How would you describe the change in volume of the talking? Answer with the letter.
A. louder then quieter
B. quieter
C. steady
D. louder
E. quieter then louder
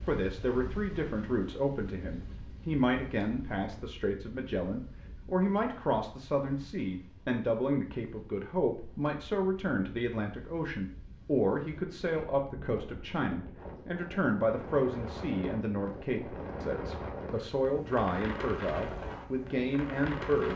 C.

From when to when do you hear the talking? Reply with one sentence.
You can hear the talking from 0.0 to 20.5 s.